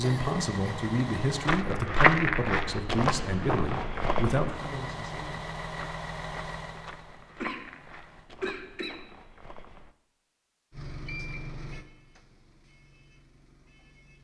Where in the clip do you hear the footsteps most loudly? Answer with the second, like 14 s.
2 s.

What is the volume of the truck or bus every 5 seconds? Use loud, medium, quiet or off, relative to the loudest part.
loud, loud, medium.